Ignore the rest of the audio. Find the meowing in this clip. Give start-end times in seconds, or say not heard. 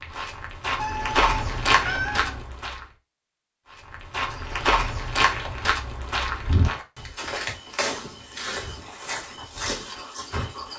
0.8-2.5.